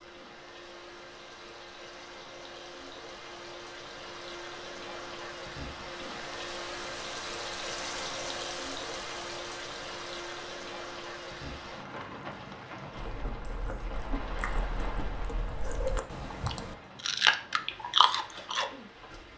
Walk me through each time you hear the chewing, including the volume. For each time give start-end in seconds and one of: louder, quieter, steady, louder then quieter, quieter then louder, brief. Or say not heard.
12.9-18.7 louder.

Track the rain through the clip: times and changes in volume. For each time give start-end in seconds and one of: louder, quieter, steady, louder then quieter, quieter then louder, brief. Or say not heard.
0.0-19.3 louder then quieter.